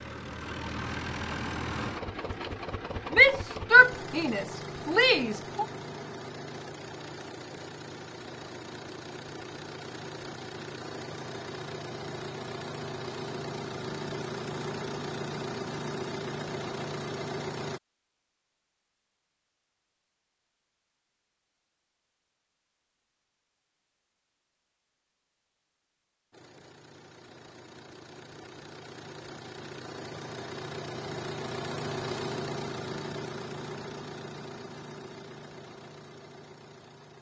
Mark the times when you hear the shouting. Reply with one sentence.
The shouting can be heard from 3.1 to 5.7 s.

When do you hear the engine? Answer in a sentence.
You can hear the engine from 0.0 to 17.8 s and from 26.3 to 37.1 s.